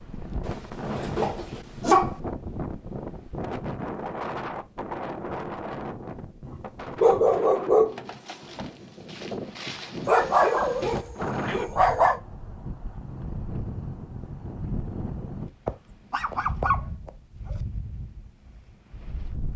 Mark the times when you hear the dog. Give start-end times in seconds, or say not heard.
0.5-2.1, 6.5-8.1, 10.1-12.2, 15.7-17.6.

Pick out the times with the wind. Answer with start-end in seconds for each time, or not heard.
0.0-19.5.